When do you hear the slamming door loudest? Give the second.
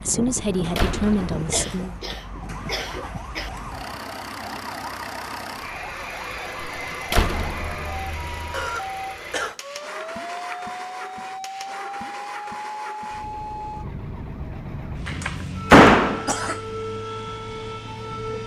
16 s.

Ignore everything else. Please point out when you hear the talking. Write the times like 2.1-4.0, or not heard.
0.0-1.9.